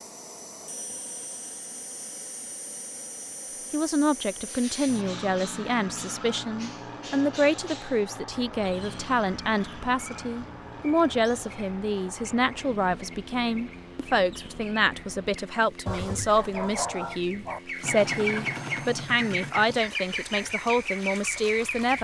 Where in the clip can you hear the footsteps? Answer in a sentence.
The footsteps can't be heard in this clip.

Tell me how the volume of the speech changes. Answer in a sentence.
The volume of the speech stays about the same.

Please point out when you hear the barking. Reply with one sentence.
The barking can be heard from 15.8 to 17.6 s.